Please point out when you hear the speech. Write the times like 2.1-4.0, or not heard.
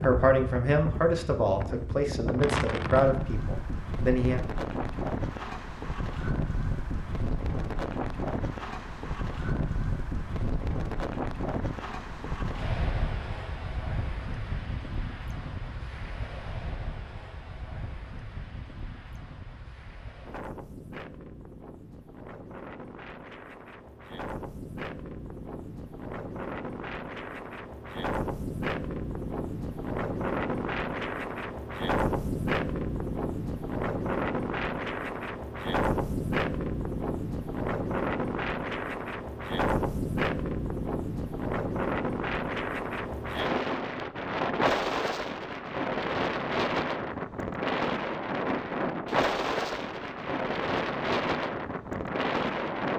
0.0-4.4.